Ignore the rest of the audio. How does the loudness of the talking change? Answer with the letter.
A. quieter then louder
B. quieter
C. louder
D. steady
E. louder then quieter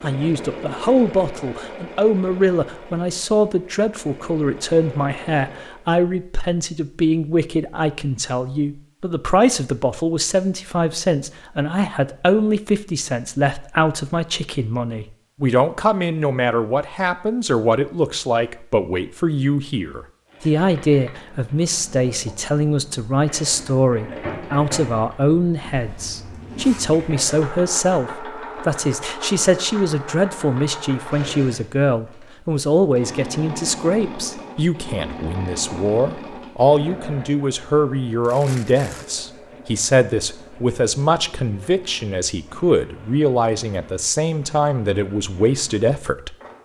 D.